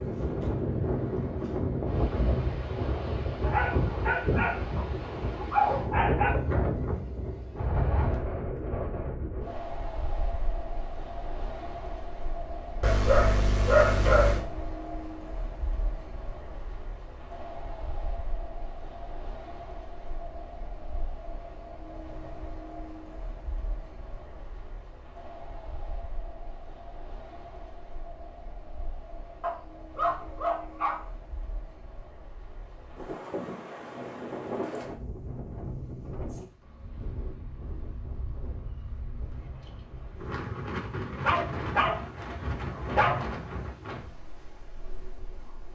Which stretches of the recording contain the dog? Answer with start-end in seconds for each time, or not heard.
3.4-6.3, 12.8-14.4, 29.4-31.0, 41.2-43.2.